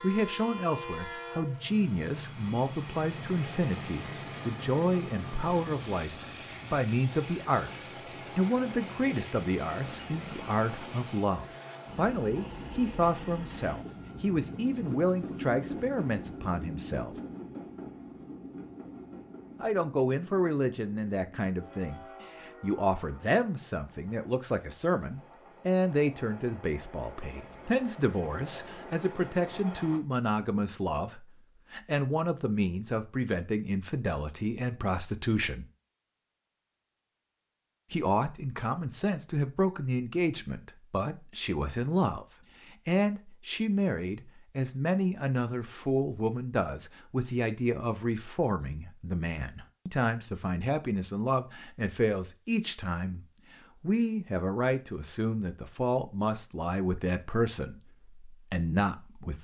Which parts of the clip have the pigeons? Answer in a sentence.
The pigeons can't be heard in this clip.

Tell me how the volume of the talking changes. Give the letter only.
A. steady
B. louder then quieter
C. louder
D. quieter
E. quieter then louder
A.